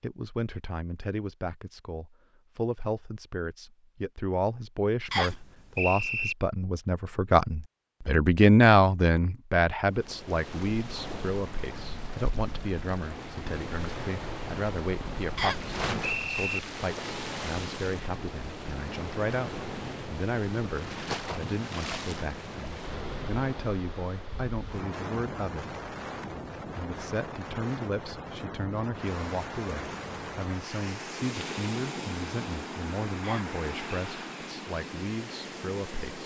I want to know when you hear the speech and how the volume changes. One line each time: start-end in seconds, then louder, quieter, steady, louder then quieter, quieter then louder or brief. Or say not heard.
0.0-25.8 louder then quieter
26.6-36.2 steady.